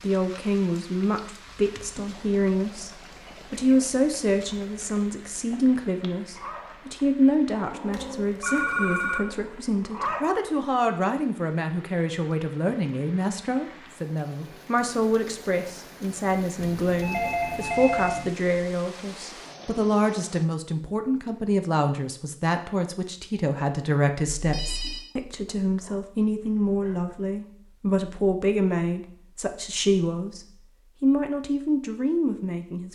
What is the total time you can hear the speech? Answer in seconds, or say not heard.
33 s.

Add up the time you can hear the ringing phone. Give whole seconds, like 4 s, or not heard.
4 s.